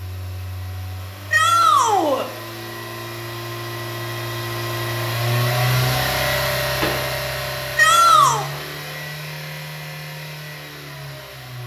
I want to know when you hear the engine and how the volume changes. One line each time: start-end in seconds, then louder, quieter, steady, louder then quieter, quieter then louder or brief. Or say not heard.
0.0-11.6 louder then quieter.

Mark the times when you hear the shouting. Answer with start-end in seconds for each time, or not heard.
1.3-2.2, 7.8-8.4.